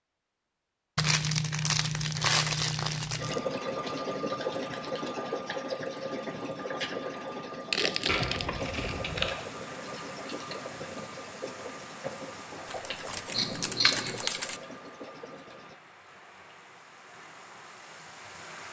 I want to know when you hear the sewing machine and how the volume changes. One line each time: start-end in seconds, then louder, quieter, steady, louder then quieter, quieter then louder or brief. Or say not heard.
3.1-15.8 quieter.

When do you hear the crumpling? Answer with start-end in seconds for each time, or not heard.
0.9-3.4, 7.7-8.4, 12.7-14.6.